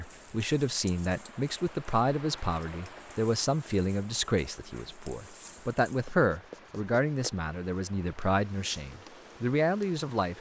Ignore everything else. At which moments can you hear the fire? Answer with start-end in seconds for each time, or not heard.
not heard.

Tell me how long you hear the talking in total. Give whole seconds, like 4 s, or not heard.
10 s.